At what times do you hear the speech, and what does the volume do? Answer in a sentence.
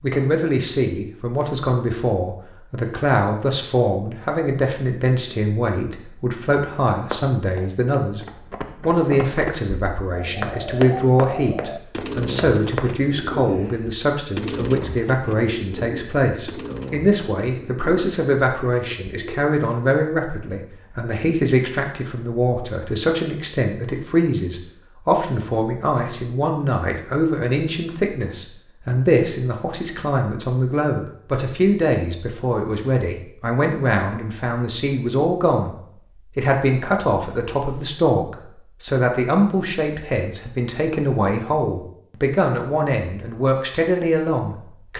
The speech can be heard from 0.0 to 8.2 s, at a steady volume; from 8.8 to 35.8 s, at a steady volume; and from 36.4 to 44.9 s, at a steady volume.